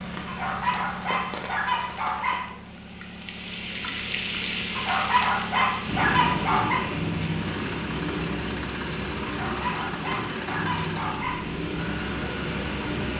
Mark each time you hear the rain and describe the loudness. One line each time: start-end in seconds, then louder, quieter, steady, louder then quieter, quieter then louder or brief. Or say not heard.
0.0-13.1 louder.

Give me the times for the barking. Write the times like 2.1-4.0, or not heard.
0.2-2.5, 4.8-6.8, 9.2-11.4.